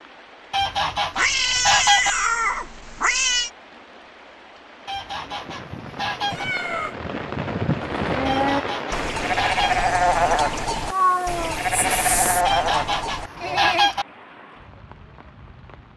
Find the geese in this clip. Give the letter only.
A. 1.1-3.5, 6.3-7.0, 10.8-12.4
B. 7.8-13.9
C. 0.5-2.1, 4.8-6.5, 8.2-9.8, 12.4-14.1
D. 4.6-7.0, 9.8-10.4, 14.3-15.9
C.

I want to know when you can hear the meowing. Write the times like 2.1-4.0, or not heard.
1.1-3.5, 6.3-7.0, 10.8-12.4.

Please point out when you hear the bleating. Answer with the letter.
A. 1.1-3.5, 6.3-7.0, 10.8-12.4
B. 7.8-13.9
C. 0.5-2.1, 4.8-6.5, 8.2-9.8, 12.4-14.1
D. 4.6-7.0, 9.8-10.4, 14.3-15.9
B.